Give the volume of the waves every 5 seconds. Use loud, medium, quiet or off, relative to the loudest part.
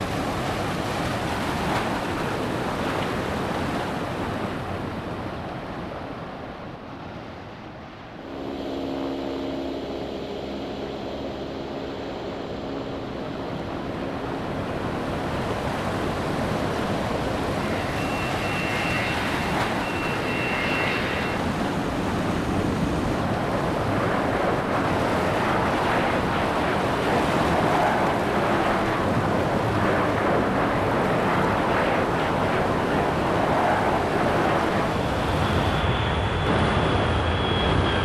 loud, medium, medium, loud, loud, loud, loud, loud.